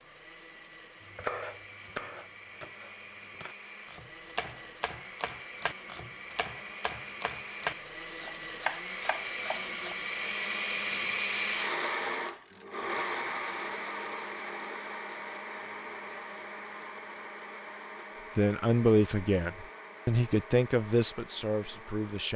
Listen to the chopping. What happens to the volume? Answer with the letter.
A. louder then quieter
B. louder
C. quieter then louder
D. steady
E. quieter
B.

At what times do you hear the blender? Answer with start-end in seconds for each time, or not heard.
0.0-22.3.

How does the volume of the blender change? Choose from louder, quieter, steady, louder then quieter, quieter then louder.
louder then quieter.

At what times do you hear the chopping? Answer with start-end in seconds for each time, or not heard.
1.1-9.9.